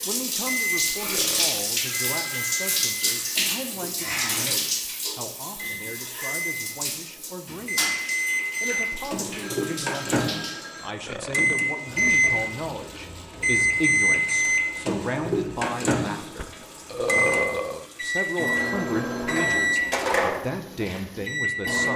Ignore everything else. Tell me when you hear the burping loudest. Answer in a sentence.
The volume of the burping peaks at 17 seconds.